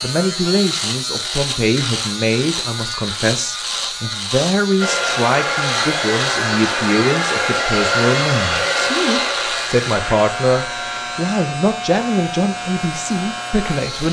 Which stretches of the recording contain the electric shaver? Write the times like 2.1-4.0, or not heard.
0.0-14.0.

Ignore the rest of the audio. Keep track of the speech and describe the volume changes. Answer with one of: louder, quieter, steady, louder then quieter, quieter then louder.
steady.